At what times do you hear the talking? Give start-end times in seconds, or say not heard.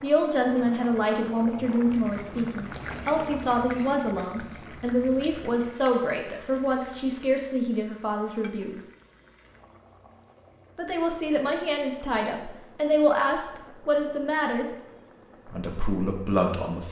0.0-8.8, 10.8-14.7, 15.4-16.8.